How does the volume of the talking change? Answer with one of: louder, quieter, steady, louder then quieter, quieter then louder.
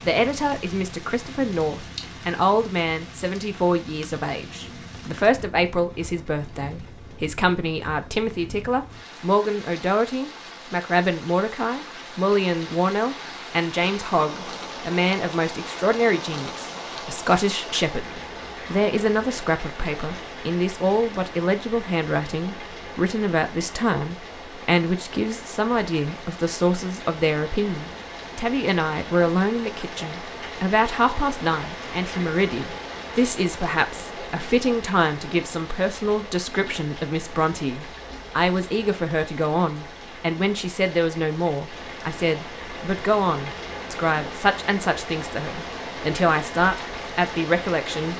steady.